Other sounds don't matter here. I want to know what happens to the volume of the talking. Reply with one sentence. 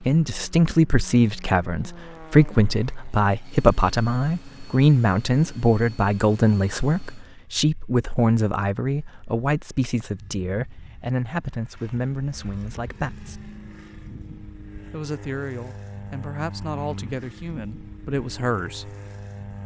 The volume of the talking goes down.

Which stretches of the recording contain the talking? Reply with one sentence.
The talking can be heard from 0.0 to 13.3 s and from 14.9 to 18.9 s.